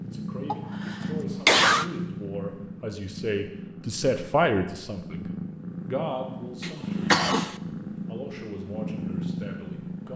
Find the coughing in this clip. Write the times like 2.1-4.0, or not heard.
0.5-1.9, 6.6-7.5.